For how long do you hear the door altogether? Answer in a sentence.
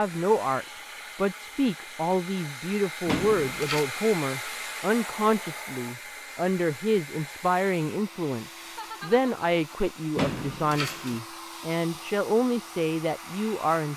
The door can be heard for 2 seconds in total.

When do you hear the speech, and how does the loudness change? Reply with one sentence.
The speech can be heard from 0.0 to 13.9 s, at a steady volume.